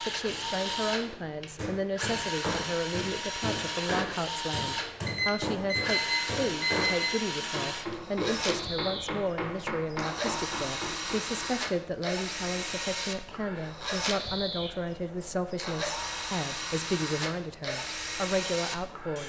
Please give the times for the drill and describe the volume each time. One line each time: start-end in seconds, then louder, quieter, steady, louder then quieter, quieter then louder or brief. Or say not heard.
0.0-19.2 steady.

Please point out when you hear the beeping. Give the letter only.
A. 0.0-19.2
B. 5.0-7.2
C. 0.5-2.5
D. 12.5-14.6
B.